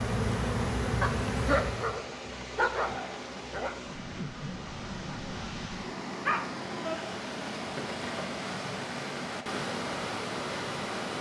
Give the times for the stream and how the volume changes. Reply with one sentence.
The stream can be heard from 0.0 to 11.1 s, getting louder.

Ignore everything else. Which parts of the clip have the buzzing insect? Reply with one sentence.
The buzzing insect can be heard from 0.0 to 2.0 s.